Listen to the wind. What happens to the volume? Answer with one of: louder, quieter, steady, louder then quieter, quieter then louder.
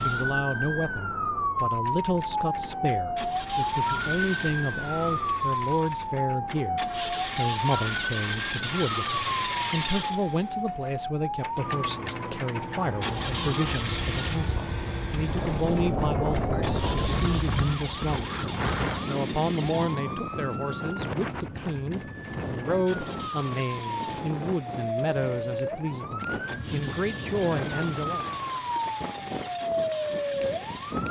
quieter.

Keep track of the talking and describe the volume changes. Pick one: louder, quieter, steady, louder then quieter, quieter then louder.
steady.